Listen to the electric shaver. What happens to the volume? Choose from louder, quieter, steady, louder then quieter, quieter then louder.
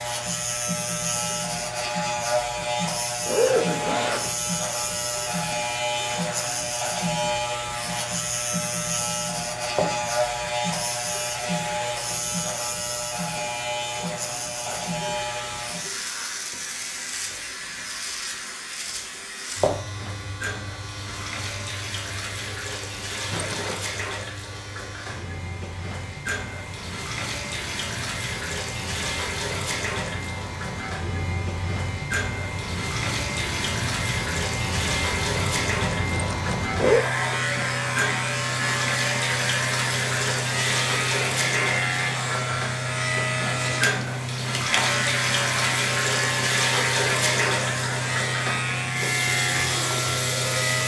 quieter then louder.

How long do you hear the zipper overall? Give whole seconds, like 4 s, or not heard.
3 s.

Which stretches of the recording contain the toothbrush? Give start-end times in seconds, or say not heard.
not heard.